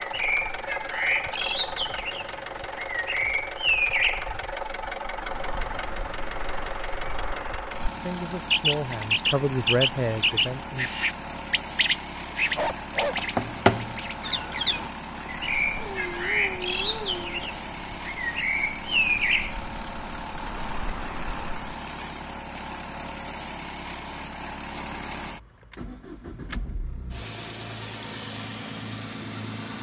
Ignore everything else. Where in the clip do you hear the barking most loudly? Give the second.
13 s.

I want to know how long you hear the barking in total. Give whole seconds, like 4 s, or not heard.
2 s.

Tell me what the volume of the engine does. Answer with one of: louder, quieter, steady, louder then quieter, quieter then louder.
steady.